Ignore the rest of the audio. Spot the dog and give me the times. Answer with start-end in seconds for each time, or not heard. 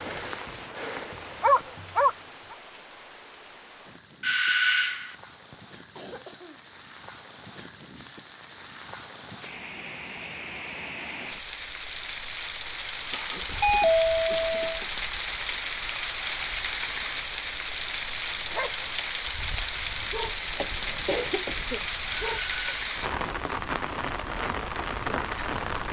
0.0-2.1, 18.2-22.8.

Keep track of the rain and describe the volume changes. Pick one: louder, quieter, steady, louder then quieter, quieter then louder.
louder.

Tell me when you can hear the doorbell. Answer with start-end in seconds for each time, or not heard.
4.2-5.2, 13.6-14.8, 22.3-22.8.